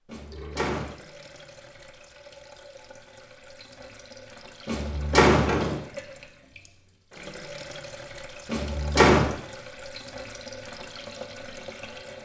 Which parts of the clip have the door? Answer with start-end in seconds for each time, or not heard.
0.1-0.9, 4.7-5.8, 8.4-9.3.